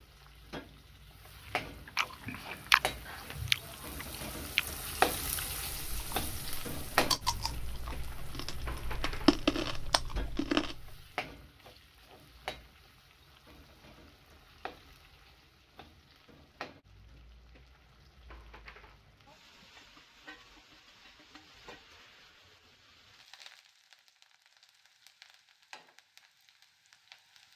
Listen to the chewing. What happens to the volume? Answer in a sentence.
The volume of the chewing goes down, then up.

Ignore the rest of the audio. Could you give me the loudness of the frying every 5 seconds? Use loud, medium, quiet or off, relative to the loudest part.
medium, loud, quiet, quiet, quiet, quiet.